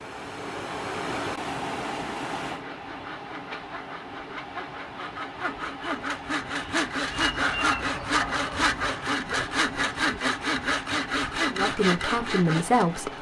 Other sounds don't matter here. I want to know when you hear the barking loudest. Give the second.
8 s.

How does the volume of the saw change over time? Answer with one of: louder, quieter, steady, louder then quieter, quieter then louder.
louder.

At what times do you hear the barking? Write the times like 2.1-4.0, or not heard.
7.2-8.8.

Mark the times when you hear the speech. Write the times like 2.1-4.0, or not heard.
11.5-13.1.